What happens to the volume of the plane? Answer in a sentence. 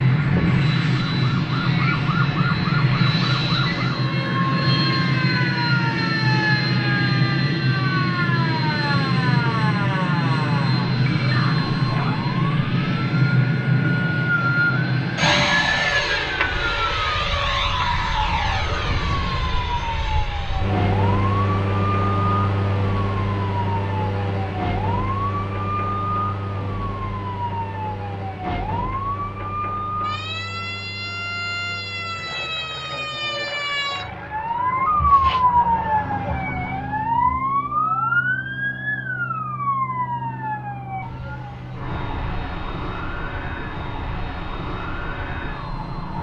The loudness of the plane goes down.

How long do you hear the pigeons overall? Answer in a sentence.
You can't hear the pigeons here.